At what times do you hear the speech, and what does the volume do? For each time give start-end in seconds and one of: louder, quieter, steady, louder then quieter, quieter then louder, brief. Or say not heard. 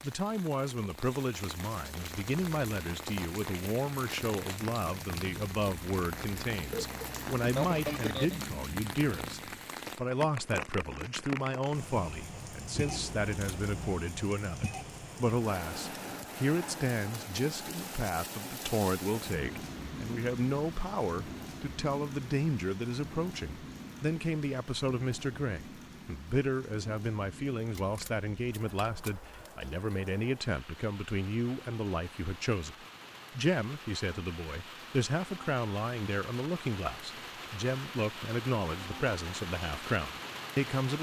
0.0-40.9 steady.